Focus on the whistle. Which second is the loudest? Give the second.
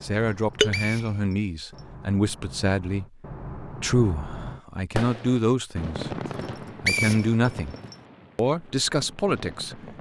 7 s.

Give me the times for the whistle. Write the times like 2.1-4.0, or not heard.
0.2-1.9, 6.3-8.0.